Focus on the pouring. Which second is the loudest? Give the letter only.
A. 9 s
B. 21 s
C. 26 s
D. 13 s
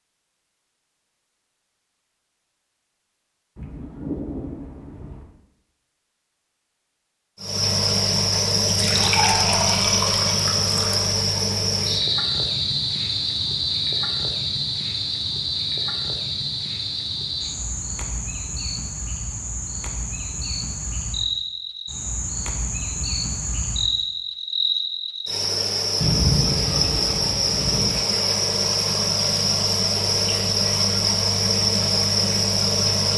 A.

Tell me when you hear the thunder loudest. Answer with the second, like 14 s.
26 s.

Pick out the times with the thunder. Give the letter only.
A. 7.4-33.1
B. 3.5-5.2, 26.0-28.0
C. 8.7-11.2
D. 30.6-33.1
B.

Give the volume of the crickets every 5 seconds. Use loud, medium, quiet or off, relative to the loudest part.
off, loud, loud, medium, medium, loud, loud.